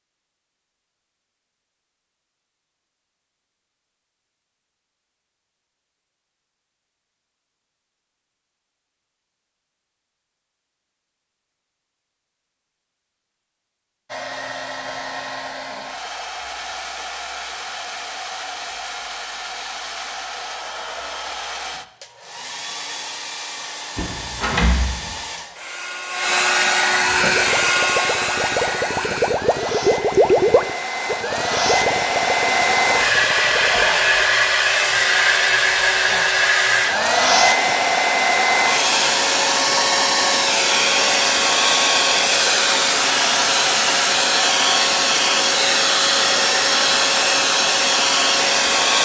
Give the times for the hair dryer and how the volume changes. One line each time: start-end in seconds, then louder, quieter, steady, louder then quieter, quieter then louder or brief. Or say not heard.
14.1-49.0 louder.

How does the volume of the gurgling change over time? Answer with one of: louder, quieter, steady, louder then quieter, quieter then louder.
louder then quieter.